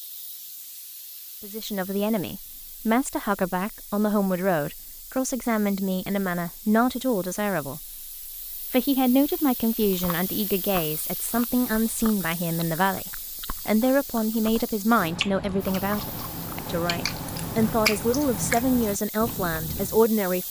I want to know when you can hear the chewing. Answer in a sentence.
The chewing can be heard from 9.8 to 20.1 s.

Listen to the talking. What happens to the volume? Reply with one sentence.
The volume of the talking stays about the same.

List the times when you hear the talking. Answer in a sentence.
The talking can be heard from 1.4 to 20.4 s.